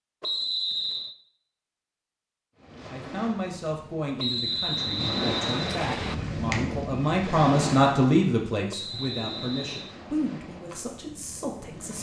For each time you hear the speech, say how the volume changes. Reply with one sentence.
You can hear the speech from 2.9 to 11.9 s, getting louder then quieter.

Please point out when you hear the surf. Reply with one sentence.
You can hear the surf from 2.5 to 11.9 s.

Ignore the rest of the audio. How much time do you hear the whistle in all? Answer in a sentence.
The whistle can be heard for 4 seconds in total.